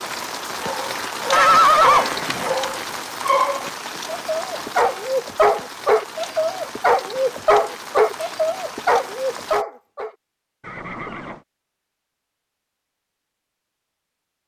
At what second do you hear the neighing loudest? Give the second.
2 s.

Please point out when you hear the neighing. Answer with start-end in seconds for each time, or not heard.
1.3-2.6, 10.6-11.4.